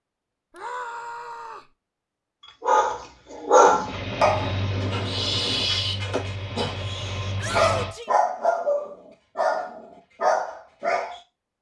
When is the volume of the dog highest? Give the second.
4 s.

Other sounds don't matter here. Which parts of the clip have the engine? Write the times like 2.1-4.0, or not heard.
3.8-8.0.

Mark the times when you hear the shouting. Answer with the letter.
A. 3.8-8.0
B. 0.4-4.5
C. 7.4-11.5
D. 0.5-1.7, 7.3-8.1
D.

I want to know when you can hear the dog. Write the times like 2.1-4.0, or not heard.
2.5-11.2.